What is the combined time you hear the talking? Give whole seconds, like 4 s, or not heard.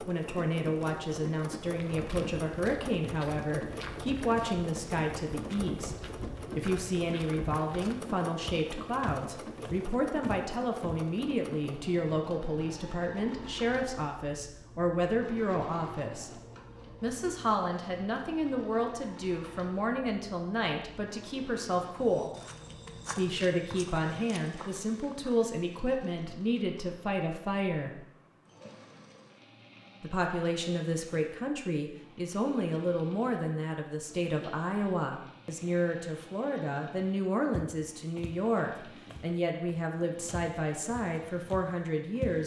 39 s.